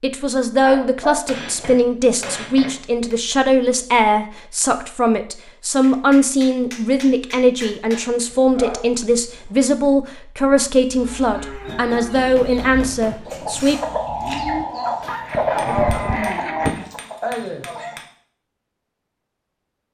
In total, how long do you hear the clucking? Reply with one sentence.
The clucking can be heard for 7 seconds in total.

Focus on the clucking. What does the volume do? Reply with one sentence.
The volume of the clucking goes up, then down.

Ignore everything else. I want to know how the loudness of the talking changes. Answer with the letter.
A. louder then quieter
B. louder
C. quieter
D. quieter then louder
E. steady
E.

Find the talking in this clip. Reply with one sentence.
You can hear the talking from 0.0 to 13.8 s.